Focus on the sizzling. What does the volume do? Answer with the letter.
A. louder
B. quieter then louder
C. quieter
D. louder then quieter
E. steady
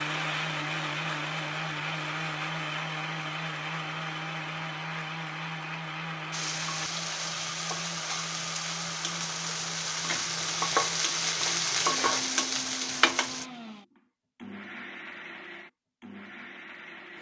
A.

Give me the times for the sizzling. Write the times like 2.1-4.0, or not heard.
6.3-13.4.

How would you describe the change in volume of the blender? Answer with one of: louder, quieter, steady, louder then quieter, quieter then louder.
quieter.